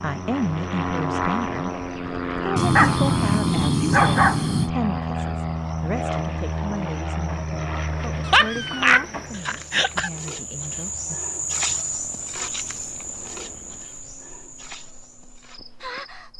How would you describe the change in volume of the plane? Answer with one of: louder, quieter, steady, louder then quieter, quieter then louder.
quieter.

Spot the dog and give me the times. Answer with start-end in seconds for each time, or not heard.
2.5-4.7, 8.2-10.1.